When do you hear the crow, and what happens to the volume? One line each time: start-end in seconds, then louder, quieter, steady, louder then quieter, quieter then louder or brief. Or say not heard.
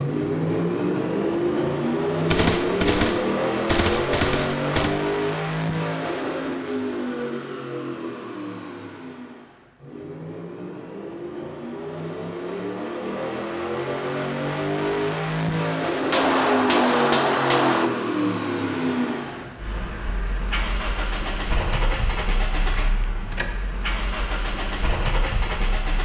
not heard.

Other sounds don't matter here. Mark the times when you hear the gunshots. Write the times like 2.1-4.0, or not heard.
2.3-5.0, 16.1-17.9.